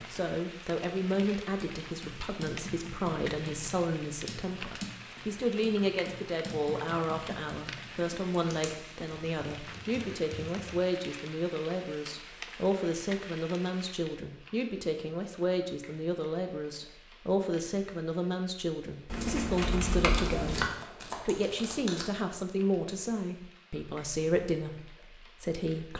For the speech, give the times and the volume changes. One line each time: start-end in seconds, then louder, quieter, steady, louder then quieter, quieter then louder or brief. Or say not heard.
0.0-25.9 steady.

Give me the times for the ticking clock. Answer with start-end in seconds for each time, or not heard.
not heard.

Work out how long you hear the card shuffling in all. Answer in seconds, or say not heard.
2 s.